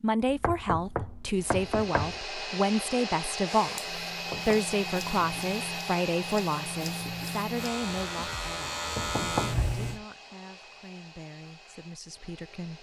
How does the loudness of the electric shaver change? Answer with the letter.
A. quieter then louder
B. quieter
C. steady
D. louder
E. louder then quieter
D.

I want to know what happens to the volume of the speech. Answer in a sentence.
The volume of the speech goes down.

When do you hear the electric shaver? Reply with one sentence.
You can hear the electric shaver from 3.4 to 10.0 s.